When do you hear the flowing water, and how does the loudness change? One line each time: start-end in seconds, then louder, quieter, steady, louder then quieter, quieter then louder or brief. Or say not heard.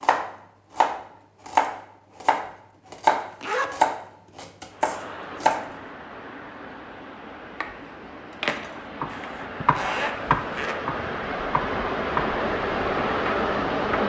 4.7-14.0 louder.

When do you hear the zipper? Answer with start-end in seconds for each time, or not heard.
3.2-3.9, 9.1-10.8.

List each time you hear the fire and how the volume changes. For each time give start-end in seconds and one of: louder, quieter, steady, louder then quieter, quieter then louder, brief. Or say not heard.
not heard.